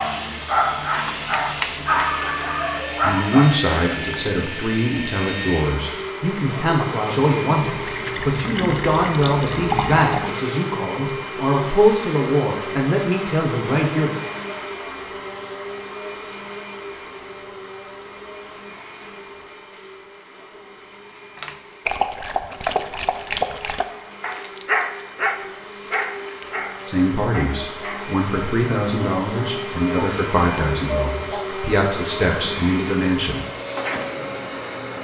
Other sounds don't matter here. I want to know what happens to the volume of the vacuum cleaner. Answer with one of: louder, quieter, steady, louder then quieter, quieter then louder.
quieter then louder.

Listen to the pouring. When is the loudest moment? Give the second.
10 s.